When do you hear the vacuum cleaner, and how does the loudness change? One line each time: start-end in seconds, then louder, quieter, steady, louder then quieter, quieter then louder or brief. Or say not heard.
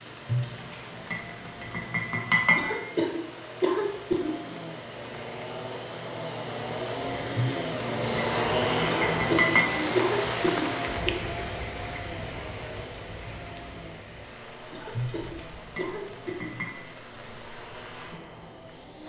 0.0-19.0 louder then quieter.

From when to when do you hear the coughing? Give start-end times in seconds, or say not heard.
2.5-4.3, 9.1-11.1, 14.7-16.5.